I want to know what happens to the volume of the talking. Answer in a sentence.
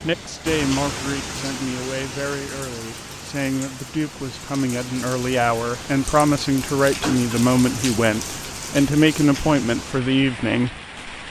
The loudness of the talking goes up.